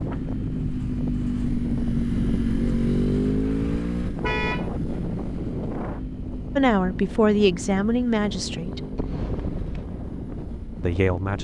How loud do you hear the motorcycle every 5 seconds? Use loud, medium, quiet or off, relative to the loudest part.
loud, medium, quiet.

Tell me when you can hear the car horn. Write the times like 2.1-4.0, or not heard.
4.2-4.7.